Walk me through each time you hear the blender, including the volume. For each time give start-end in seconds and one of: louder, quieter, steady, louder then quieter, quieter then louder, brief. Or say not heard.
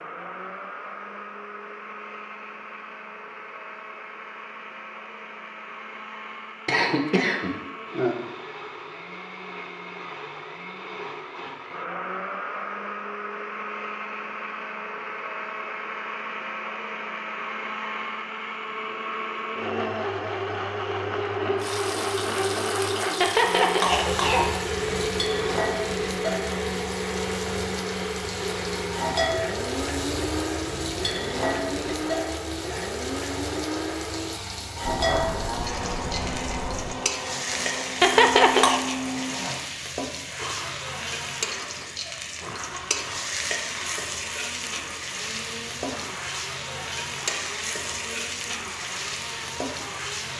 0.0-50.3 louder then quieter.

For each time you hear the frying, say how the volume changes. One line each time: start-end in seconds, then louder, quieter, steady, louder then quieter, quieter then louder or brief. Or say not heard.
21.6-50.3 steady.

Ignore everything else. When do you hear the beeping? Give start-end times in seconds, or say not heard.
34.9-37.0.